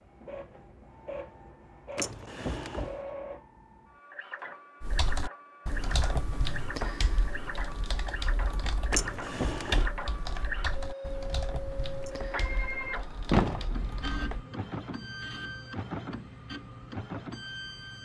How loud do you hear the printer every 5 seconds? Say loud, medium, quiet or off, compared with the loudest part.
medium, loud, loud, loud.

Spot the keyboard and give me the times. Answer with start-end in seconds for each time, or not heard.
4.8-14.4.